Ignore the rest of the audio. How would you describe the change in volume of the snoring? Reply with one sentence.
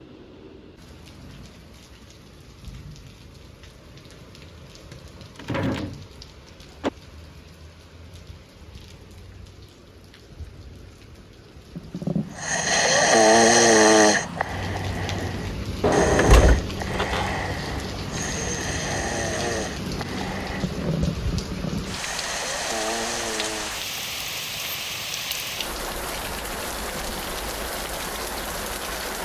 The volume of the snoring goes down.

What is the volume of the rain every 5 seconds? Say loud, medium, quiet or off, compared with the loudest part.
quiet, quiet, medium, loud, loud, loud.